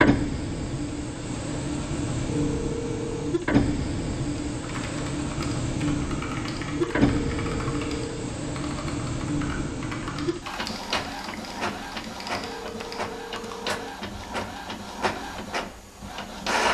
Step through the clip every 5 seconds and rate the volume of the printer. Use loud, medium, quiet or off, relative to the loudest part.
loud, loud, medium, loud.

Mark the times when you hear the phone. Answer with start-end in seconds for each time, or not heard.
2.2-3.4, 6.8-8.3, 12.4-14.0.